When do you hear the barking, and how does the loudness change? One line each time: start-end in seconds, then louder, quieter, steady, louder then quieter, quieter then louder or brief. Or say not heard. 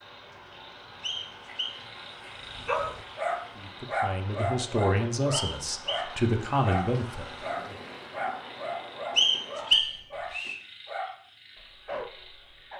2.5-12.7 quieter.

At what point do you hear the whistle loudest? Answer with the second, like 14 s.
10 s.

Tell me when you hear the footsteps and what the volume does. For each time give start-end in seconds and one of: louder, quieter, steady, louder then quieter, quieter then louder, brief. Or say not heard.
not heard.